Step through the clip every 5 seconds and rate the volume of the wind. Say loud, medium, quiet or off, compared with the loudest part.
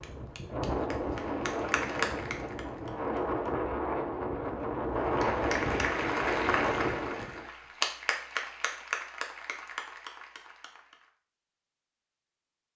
loud, loud, off.